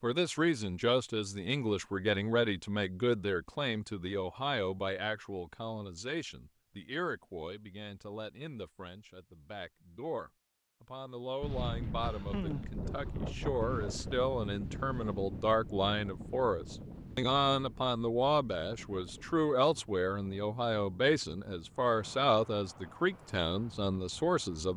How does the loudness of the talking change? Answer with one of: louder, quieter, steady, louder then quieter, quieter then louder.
quieter then louder.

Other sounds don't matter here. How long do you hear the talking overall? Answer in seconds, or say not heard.
25 s.